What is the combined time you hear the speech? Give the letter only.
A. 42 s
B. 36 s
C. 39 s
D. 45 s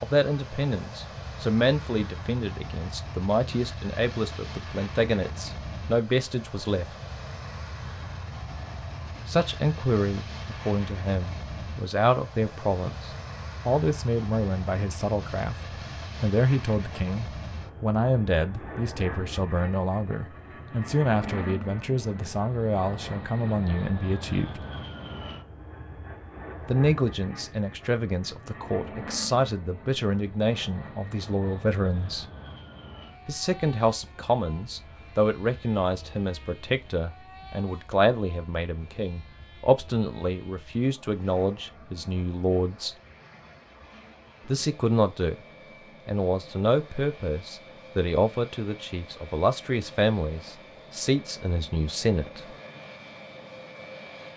D.